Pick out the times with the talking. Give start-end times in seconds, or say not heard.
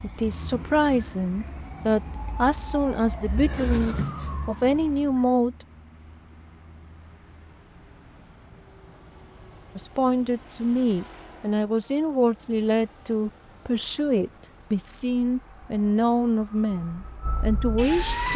0.0-5.7, 9.8-18.3.